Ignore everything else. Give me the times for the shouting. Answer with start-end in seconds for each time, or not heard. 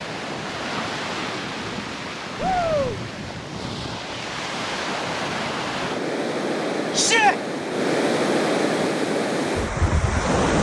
2.4-3.0, 6.9-7.3.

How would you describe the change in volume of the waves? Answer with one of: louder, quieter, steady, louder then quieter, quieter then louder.
louder.